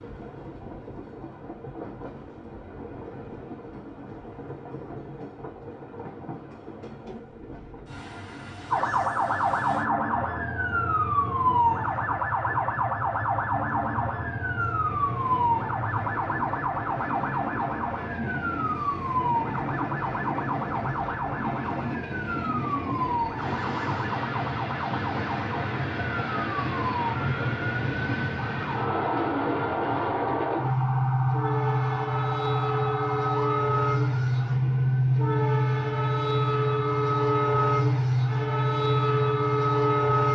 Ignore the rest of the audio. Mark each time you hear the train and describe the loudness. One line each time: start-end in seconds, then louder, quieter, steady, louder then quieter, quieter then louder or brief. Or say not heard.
0.0-40.3 louder.